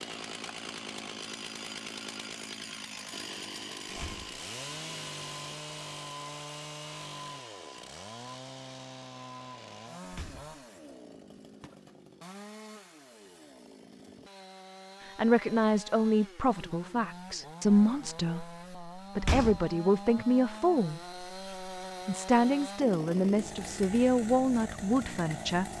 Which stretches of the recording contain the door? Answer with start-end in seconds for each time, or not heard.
3.9-4.3, 10.1-10.6, 19.1-19.8.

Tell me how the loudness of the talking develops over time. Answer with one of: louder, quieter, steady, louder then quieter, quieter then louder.
steady.